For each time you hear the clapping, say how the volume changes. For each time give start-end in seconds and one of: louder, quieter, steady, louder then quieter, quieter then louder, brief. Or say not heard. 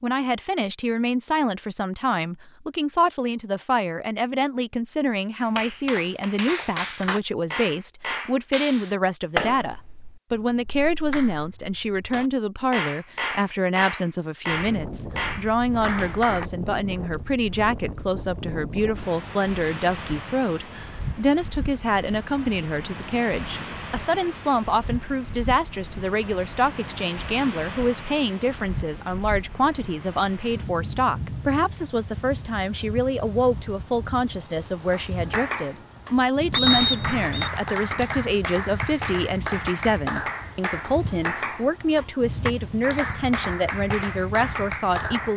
5.4-16.5 quieter then louder
34.9-45.3 steady.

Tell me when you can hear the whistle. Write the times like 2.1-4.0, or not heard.
36.5-37.5.